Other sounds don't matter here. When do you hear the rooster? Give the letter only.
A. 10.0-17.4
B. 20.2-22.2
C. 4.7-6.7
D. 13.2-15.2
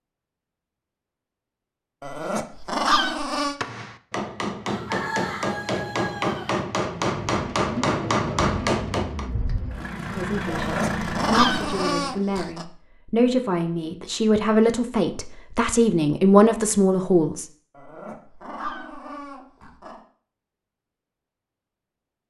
C.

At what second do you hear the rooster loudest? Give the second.
5 s.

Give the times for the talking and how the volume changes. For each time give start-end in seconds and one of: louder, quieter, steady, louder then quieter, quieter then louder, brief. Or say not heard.
10.0-17.4 louder.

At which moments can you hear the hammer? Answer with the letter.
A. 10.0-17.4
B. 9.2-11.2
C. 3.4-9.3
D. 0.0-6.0
C.